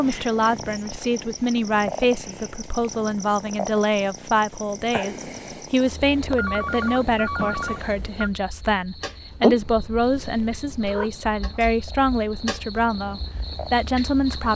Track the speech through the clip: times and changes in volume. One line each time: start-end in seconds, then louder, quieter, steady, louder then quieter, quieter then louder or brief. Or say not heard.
0.0-14.5 steady.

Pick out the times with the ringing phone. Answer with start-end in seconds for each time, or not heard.
6.2-8.3.